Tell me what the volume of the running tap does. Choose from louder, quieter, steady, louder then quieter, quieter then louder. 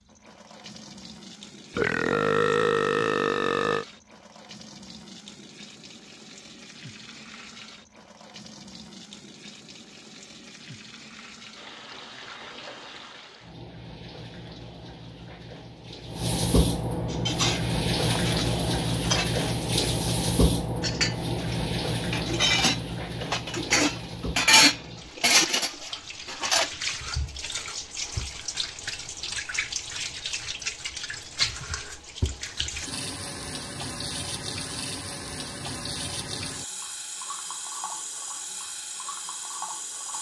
louder then quieter.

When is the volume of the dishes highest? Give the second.
25 s.